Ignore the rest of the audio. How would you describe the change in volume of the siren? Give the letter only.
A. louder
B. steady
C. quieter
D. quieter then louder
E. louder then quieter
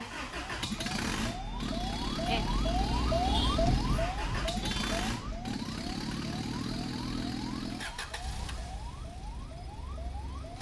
E.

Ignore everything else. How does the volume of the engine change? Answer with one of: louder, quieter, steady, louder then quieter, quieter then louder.
quieter.